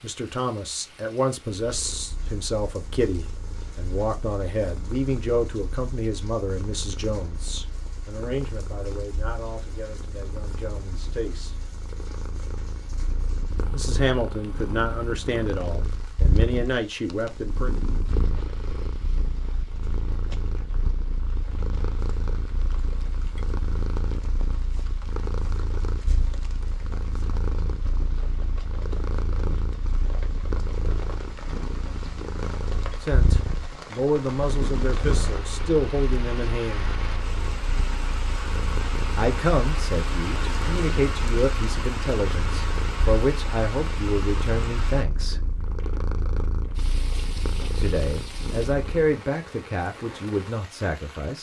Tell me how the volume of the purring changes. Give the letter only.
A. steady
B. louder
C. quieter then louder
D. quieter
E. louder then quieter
B.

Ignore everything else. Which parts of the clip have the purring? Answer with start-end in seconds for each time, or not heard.
1.6-49.1.